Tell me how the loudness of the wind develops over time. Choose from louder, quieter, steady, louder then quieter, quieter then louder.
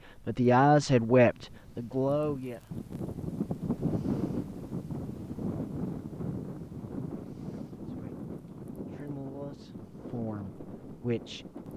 louder then quieter.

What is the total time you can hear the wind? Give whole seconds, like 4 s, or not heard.
12 s.